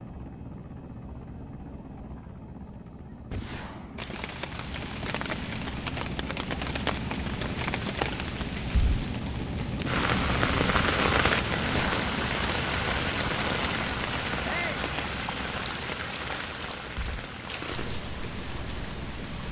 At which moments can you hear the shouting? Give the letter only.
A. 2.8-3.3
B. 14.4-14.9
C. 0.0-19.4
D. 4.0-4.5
B.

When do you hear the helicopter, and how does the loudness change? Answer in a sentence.
You can hear the helicopter from 0.0 to 19.4 s, getting louder then quieter.